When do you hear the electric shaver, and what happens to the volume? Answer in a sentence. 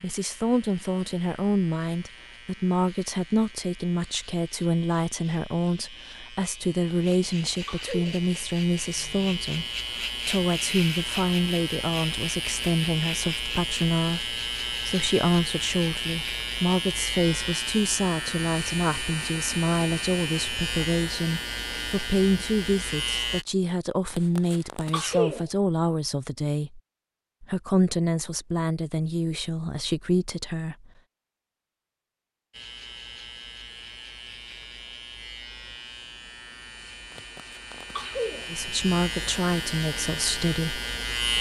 You can hear the electric shaver from 0.0 to 23.4 s, getting louder; and from 32.5 to 41.3 s, getting louder.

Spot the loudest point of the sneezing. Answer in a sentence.
The volume of the sneezing peaks at 25 seconds.